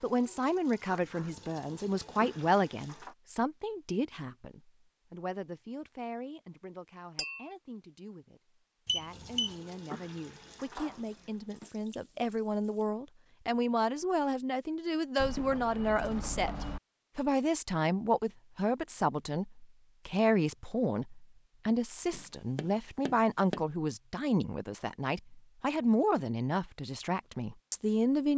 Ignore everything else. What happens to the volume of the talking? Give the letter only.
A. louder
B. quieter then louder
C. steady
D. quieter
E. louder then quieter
B.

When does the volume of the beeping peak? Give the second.
9 s.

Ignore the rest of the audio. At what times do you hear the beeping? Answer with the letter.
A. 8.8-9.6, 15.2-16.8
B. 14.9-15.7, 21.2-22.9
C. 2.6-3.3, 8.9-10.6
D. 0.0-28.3
A.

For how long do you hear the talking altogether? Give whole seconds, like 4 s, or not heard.
28 s.